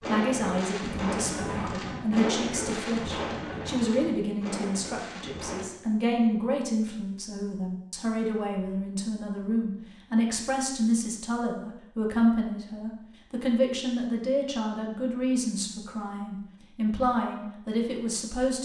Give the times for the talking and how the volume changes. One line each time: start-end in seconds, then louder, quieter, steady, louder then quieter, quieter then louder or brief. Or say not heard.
0.1-18.6 steady.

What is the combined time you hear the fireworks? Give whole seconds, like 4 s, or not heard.
6 s.